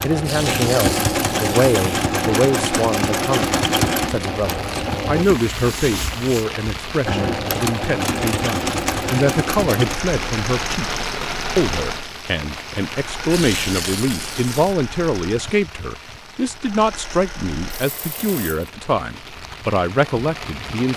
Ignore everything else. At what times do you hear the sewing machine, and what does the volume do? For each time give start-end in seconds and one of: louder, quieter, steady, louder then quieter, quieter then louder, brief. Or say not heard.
0.0-18.7 quieter.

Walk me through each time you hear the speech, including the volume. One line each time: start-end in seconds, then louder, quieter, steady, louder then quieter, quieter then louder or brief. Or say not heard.
0.0-20.9 steady.